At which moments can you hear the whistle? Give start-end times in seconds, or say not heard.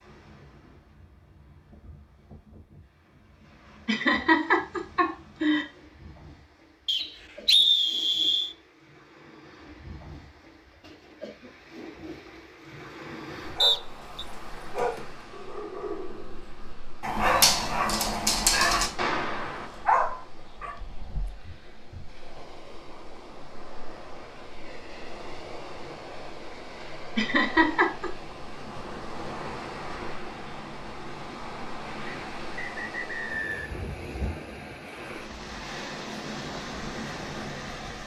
6.8-8.6, 13.6-14.2, 32.0-33.8.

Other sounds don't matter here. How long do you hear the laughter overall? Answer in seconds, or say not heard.
3 s.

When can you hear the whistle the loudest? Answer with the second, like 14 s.
8 s.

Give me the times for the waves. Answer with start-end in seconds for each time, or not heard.
0.0-38.0.